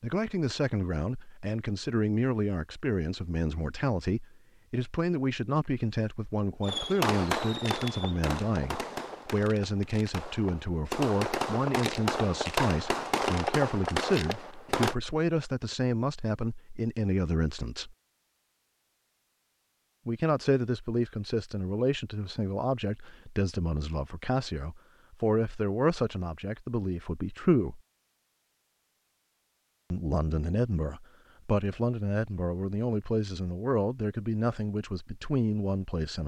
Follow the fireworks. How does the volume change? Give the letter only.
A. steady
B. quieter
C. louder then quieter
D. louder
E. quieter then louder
E.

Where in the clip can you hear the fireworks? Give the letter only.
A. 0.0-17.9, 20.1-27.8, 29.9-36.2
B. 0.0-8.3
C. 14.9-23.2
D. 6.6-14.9
D.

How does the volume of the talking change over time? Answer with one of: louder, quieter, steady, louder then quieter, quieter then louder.
steady.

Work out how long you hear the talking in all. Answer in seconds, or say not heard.
32 s.